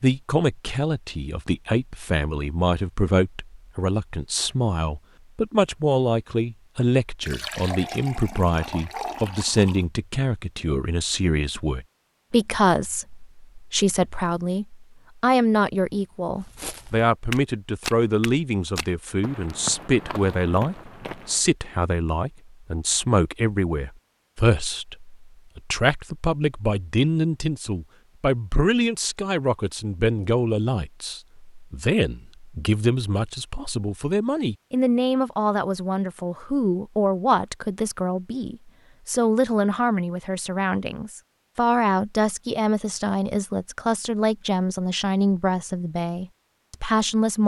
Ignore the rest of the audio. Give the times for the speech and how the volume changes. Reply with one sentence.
You can hear the speech from 0.0 to 47.4 s, at a steady volume.